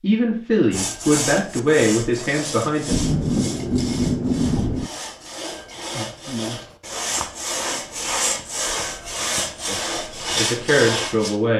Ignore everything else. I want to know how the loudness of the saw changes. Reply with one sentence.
The loudness of the saw goes down, then up.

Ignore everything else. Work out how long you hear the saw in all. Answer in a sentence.
You can hear the saw for 11 seconds altogether.